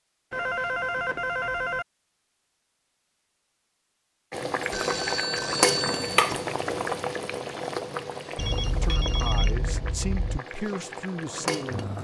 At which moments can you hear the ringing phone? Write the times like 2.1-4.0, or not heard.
0.3-1.9, 4.7-6.5, 8.3-10.4.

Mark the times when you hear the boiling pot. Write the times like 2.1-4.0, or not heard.
4.3-11.9.